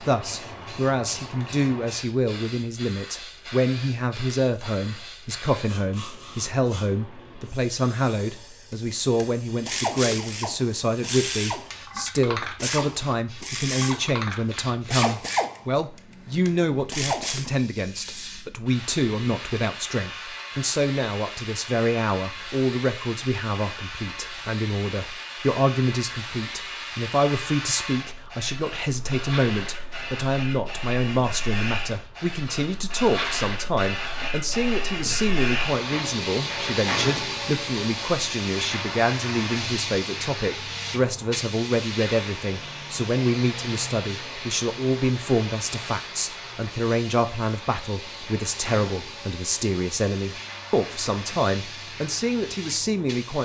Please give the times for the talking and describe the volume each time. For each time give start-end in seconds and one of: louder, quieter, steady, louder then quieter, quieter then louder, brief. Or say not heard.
0.0-53.4 steady.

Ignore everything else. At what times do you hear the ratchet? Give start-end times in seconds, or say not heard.
8.7-11.8, 12.4-14.2, 14.8-17.5.